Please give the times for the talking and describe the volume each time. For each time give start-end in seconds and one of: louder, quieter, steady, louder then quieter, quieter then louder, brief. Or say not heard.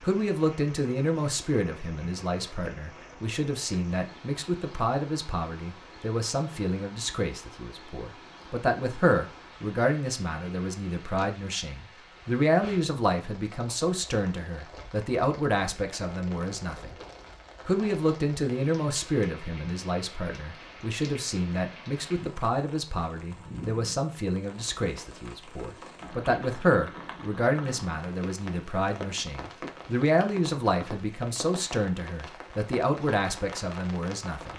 0.0-16.9 steady
17.6-34.5 steady.